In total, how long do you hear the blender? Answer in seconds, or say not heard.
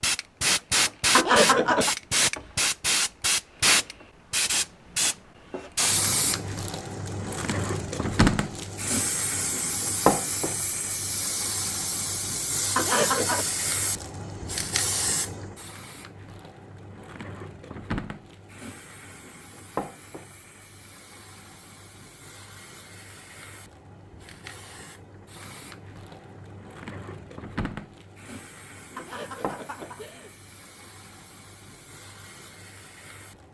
not heard.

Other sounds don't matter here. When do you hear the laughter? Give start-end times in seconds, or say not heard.
1.1-1.9, 12.8-13.4, 28.9-30.4.